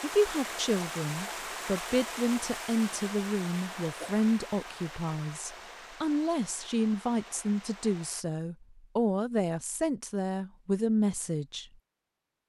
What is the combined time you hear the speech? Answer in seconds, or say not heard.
12 s.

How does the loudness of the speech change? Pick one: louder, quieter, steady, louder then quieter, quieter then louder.
steady.